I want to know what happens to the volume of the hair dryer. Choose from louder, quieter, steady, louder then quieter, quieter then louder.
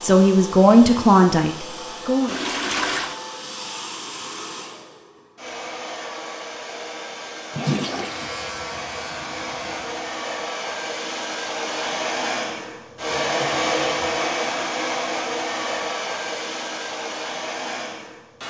louder.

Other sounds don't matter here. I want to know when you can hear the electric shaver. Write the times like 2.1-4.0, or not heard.
8.0-10.2.